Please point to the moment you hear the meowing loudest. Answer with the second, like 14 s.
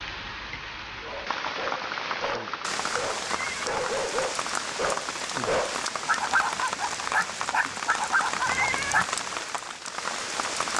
9 s.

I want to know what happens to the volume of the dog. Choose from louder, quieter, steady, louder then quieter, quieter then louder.
louder.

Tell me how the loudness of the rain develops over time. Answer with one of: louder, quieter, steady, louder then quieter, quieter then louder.
steady.